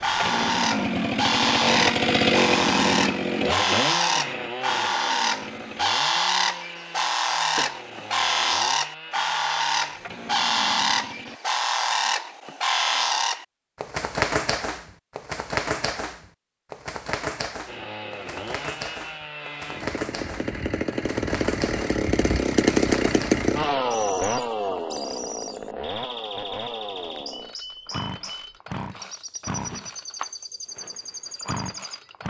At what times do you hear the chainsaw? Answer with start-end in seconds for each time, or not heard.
0.0-11.4, 17.6-32.2.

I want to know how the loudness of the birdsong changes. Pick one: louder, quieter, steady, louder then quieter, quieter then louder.
quieter.